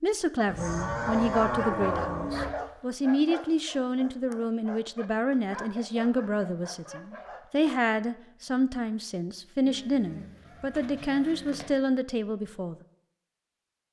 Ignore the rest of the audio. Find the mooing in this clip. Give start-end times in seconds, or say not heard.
0.5-2.5, 9.7-11.7.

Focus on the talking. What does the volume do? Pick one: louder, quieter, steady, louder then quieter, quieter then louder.
steady.